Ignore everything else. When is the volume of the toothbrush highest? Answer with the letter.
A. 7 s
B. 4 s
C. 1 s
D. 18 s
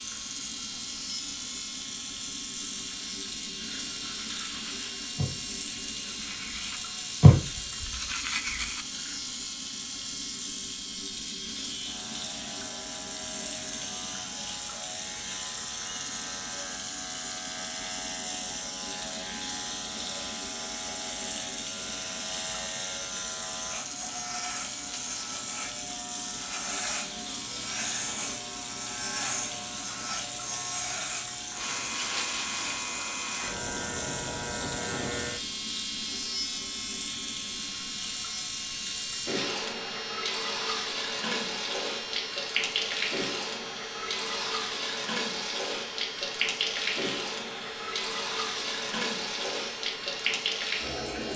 A.